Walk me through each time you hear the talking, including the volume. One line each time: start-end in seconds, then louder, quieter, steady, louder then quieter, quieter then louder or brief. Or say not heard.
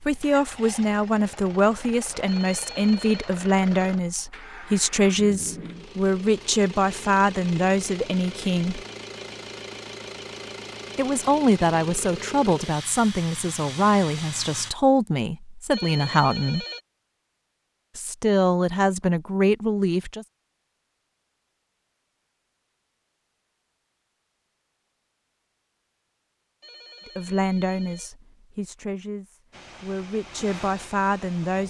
0.0-8.8 steady
10.9-16.6 steady
17.9-20.2 brief
27.1-31.6 quieter then louder.